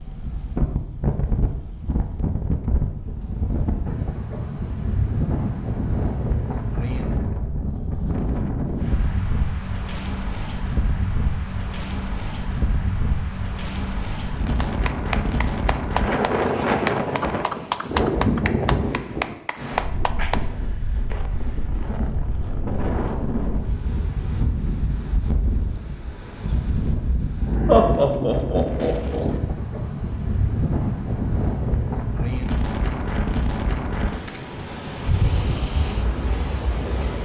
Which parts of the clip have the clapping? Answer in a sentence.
You can hear the clapping from 14.6 to 20.4 s.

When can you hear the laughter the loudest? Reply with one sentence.
The volume of the laughter peaks at 28 seconds.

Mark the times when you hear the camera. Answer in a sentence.
You can hear the camera from 34.2 to 34.8 s.